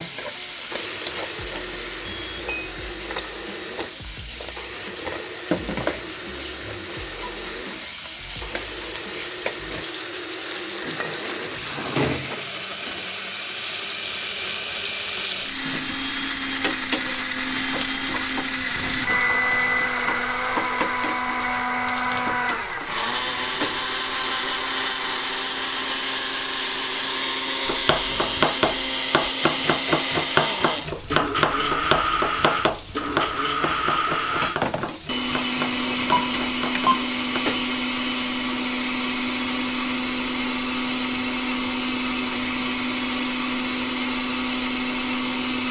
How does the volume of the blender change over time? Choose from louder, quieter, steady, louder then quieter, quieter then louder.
louder.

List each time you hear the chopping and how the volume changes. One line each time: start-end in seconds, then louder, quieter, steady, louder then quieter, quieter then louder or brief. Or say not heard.
27.6-37.4 quieter.